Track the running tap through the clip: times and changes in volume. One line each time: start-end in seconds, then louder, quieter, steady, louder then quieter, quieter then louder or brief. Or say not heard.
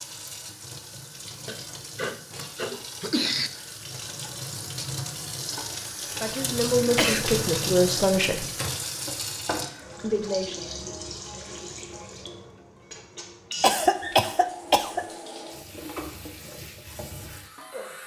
0.0-18.0 louder then quieter.